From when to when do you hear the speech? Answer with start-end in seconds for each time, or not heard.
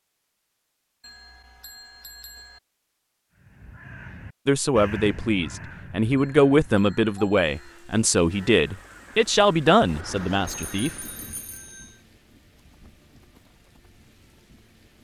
4.5-10.9.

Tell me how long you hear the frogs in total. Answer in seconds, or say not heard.
not heard.